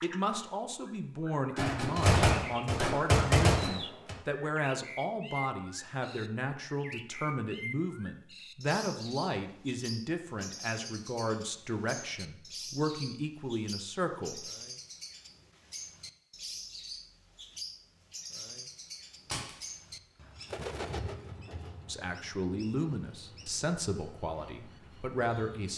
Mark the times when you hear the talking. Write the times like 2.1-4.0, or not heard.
0.0-14.4, 21.9-25.7.